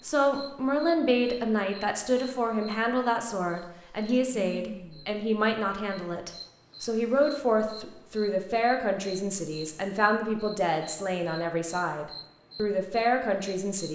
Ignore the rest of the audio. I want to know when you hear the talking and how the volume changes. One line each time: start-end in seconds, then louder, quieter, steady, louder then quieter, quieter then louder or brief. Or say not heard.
0.0-13.9 steady.